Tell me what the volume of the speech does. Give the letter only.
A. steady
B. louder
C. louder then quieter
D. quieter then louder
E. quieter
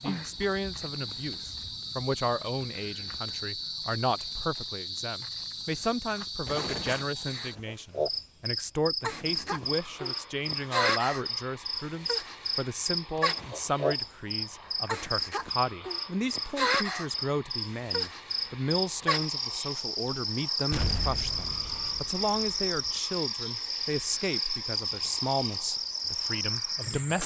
A.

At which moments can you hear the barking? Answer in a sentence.
You can't hear the barking here.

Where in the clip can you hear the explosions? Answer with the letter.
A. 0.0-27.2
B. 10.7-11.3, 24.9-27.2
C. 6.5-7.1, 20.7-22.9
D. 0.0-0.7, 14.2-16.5
C.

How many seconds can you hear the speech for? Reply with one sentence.
You can hear the speech for 27 seconds altogether.